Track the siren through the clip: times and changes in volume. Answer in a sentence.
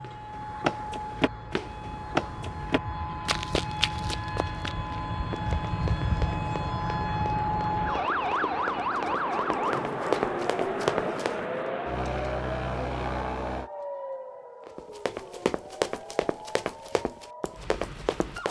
You can hear the siren from 0.0 to 18.4 s, getting louder then quieter.